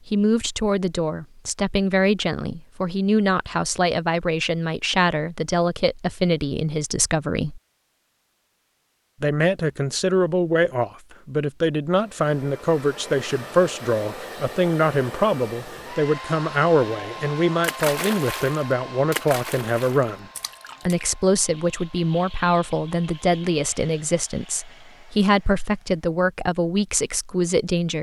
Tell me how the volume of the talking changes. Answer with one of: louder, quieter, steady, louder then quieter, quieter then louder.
steady.